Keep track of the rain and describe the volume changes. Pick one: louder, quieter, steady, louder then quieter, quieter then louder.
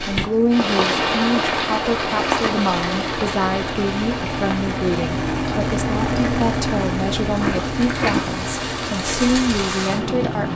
quieter then louder.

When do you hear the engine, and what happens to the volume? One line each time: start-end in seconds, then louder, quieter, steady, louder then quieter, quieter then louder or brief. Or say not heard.
0.1-10.5 louder then quieter.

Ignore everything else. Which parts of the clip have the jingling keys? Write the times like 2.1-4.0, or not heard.
7.4-8.4.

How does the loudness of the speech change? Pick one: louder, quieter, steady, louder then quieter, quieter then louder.
steady.